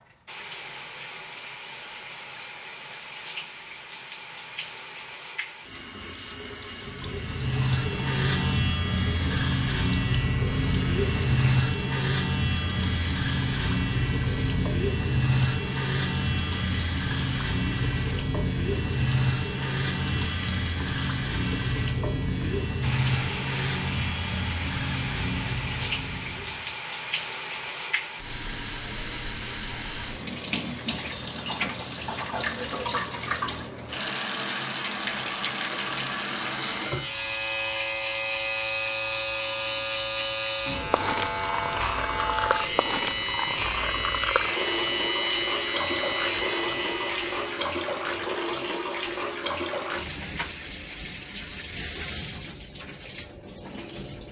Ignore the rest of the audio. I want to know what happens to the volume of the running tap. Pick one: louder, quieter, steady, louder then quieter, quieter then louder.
louder.